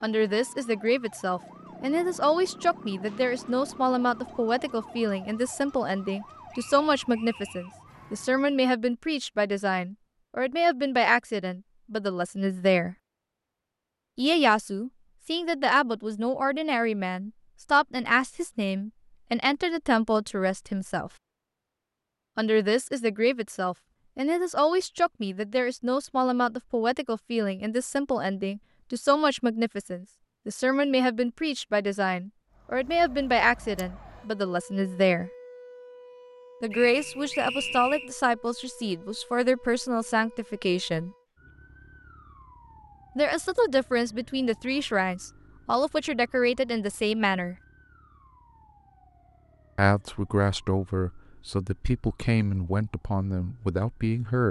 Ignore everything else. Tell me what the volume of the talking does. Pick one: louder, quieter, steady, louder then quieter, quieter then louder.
steady.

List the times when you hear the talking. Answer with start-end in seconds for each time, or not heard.
0.0-12.9, 14.2-21.1, 22.4-35.3, 36.6-41.1, 43.1-47.5, 49.8-54.4.